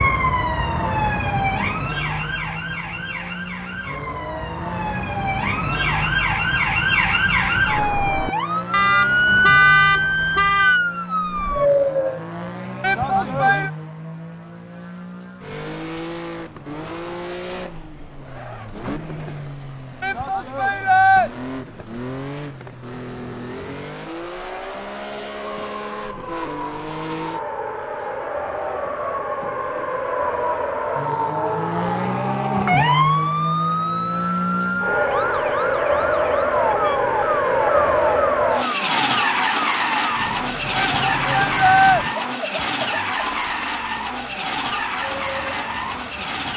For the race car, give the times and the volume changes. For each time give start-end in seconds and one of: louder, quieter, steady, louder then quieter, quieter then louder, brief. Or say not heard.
0.1-46.5 louder.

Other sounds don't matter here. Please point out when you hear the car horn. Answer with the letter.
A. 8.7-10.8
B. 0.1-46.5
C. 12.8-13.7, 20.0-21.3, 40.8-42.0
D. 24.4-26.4
A.